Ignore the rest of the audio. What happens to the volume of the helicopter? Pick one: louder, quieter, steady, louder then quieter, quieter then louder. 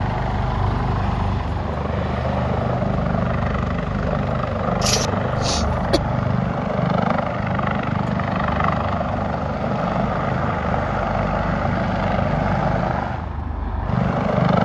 steady.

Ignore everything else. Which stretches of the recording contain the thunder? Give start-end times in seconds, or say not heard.
not heard.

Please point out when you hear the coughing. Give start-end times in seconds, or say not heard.
4.8-6.0.